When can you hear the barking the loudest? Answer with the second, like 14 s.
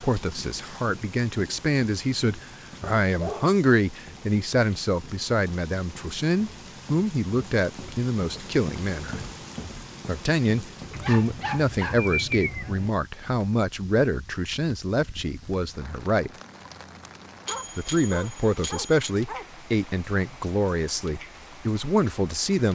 12 s.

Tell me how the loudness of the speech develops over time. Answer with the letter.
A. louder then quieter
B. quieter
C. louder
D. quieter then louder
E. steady
E.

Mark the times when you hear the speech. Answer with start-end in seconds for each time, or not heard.
0.0-9.2, 10.1-16.3, 17.8-22.7.